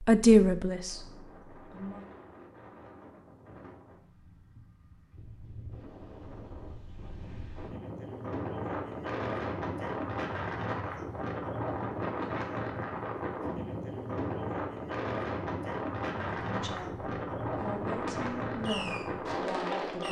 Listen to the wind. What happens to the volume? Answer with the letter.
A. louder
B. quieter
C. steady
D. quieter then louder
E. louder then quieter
A.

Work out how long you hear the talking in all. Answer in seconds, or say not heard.
6 s.